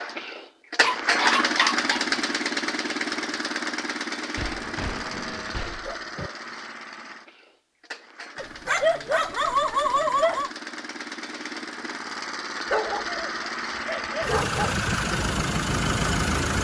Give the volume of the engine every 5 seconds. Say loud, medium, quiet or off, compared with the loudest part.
loud, quiet, medium, loud.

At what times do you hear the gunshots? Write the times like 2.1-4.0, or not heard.
4.3-6.3.